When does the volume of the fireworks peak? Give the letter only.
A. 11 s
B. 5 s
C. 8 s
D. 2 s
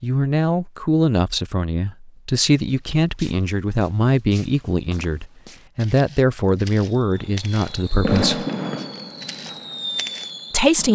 C.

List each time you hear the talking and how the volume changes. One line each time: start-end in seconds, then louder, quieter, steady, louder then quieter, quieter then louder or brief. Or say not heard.
0.0-8.4 steady
10.5-10.9 brief.